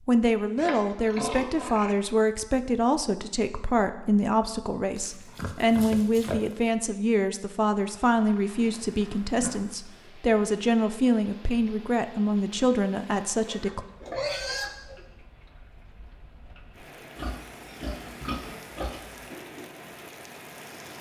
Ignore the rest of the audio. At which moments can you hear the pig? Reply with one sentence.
You can hear the pig from 0.6 to 1.9 s, from 5.0 to 6.7 s, from 8.6 to 10.1 s, from 13.4 to 15.1 s and from 17.1 to 19.2 s.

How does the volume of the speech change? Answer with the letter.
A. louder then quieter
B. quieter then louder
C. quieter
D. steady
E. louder
D.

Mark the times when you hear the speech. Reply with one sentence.
The speech can be heard from 0.1 to 13.8 s.